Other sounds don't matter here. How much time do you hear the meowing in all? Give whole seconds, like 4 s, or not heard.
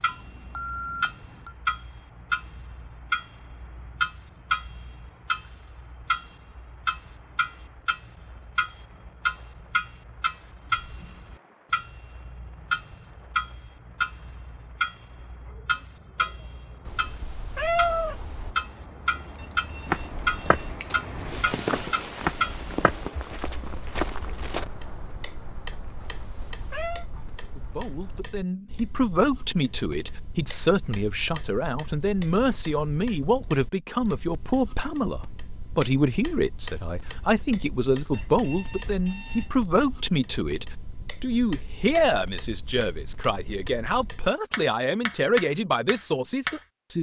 3 s.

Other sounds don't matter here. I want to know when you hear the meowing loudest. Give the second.
18 s.